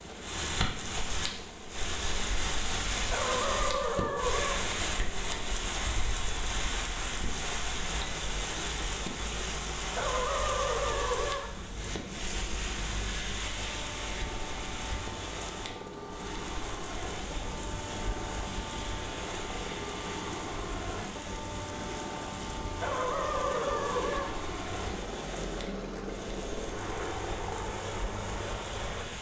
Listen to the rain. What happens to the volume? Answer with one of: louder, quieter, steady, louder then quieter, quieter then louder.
quieter.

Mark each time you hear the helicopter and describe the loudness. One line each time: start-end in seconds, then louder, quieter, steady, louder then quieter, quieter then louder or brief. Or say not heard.
0.0-29.1 louder.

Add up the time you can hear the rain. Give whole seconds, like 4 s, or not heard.
29 s.